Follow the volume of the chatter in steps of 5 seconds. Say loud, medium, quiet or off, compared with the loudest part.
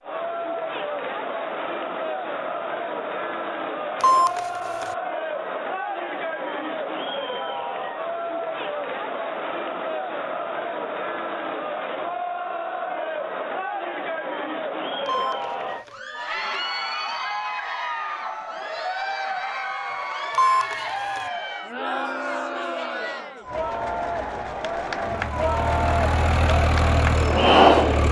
medium, medium, medium, medium, medium, loud.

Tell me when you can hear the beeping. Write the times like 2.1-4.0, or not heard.
4.0-5.0, 15.1-16.0, 20.4-21.2.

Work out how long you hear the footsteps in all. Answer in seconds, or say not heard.
not heard.